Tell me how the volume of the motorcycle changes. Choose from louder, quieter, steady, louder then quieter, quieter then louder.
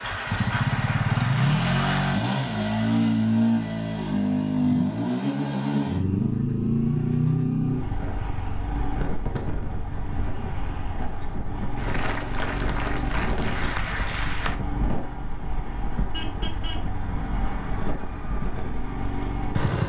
quieter.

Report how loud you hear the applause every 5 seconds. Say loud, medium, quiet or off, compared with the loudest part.
loud, off, loud, off.